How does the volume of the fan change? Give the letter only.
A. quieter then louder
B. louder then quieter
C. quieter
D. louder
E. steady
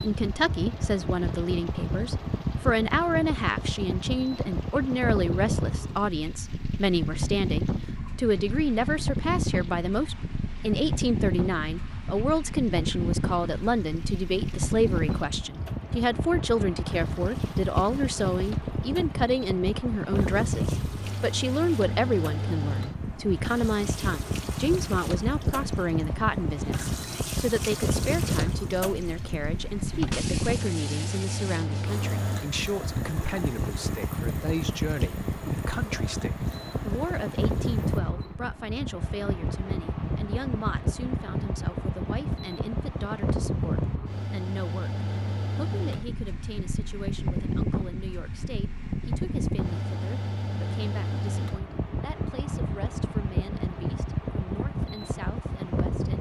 E.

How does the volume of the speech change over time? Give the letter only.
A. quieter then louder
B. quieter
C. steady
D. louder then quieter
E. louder
B.